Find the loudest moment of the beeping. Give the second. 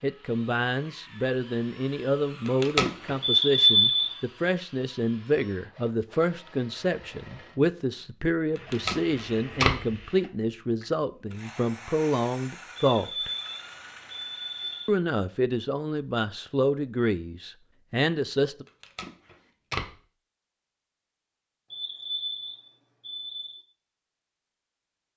4 s.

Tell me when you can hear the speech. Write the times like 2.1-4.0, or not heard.
0.0-13.3, 14.8-18.6.